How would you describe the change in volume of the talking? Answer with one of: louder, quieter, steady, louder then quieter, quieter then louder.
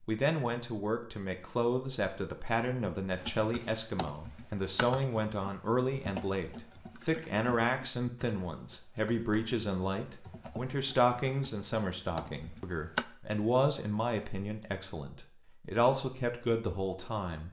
steady.